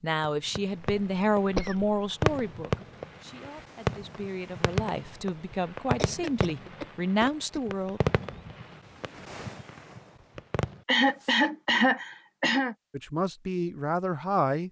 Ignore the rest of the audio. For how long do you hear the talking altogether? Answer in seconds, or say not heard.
10 s.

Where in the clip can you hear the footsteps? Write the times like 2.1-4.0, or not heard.
not heard.